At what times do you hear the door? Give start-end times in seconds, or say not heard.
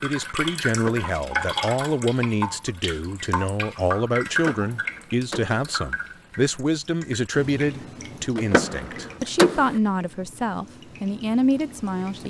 0.7-1.1, 4.3-5.6, 8.3-9.8.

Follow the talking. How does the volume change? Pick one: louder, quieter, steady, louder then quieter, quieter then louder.
steady.